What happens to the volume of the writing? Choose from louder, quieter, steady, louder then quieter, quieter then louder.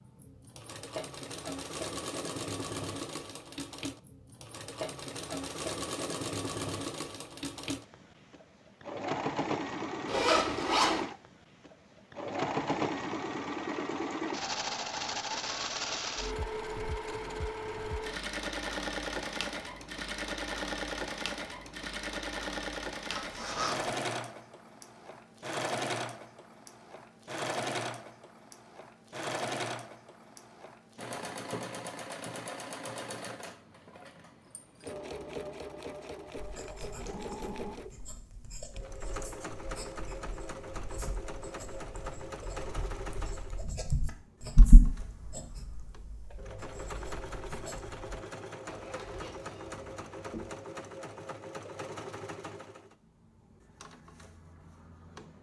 louder then quieter.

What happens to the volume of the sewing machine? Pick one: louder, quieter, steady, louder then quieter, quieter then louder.
quieter.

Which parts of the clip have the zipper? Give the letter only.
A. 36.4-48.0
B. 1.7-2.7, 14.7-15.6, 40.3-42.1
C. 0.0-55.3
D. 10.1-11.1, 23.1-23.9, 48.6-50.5
D.